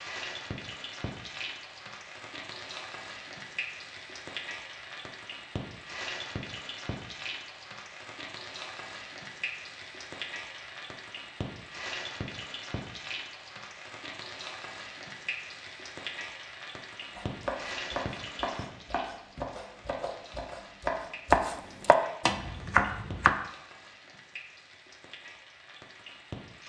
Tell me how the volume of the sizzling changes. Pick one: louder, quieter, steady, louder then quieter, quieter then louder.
quieter.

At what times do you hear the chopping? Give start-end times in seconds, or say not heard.
17.1-23.4.